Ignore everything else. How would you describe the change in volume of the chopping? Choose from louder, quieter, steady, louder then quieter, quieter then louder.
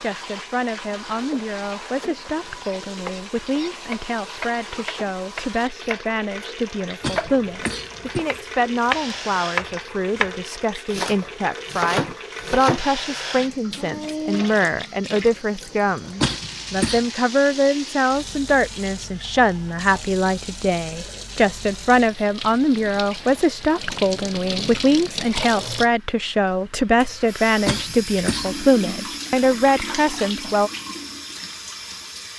louder.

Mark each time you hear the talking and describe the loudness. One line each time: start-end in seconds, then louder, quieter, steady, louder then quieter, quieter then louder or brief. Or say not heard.
0.0-30.7 louder.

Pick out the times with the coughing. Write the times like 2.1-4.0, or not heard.
7.0-8.2, 16.2-17.1, 27.6-28.6.